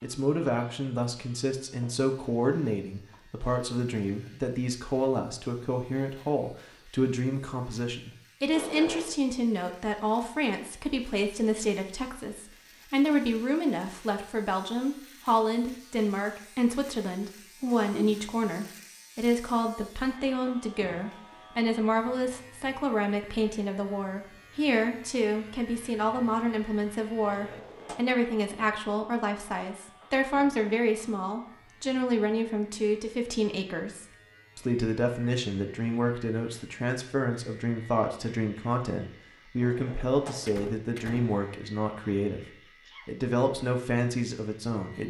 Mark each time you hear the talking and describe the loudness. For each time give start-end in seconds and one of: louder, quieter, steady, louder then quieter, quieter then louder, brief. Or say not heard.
0.0-45.0 steady.